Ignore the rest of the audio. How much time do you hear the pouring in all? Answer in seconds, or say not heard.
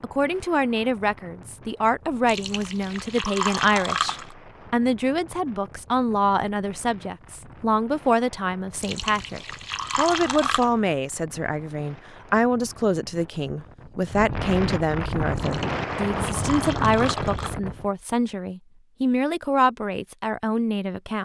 6 s.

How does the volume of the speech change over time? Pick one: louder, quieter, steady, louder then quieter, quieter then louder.
steady.